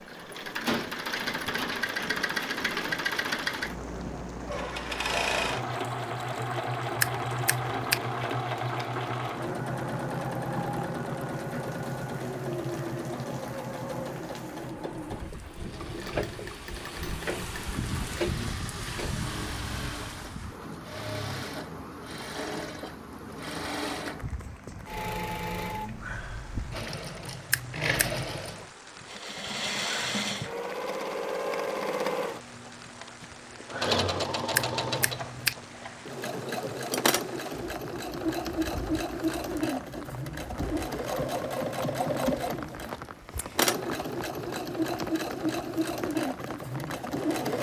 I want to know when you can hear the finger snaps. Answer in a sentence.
You can hear the finger snaps from 7.0 to 8.0 s, from 27.5 to 28.2 s and from 34.5 to 35.5 s.